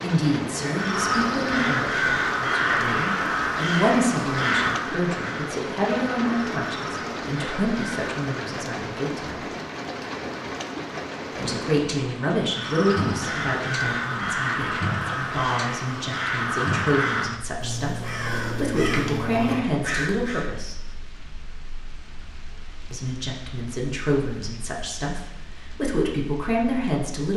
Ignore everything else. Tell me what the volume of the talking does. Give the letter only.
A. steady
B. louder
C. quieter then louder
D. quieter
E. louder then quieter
A.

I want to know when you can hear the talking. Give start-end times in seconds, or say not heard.
0.0-9.4, 11.3-20.9, 22.9-27.3.